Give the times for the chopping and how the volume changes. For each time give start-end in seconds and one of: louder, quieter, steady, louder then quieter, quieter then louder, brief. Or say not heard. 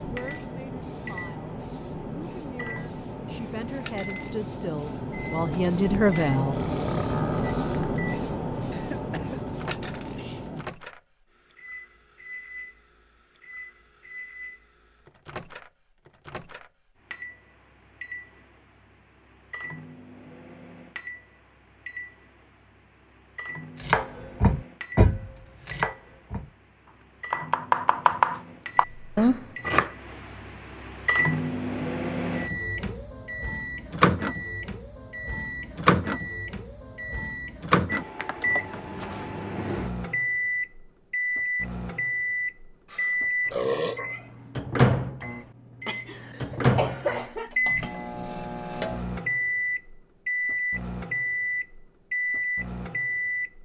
23.8-29.9 quieter then louder.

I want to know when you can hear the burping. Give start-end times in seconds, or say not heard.
6.5-7.8, 42.9-44.2.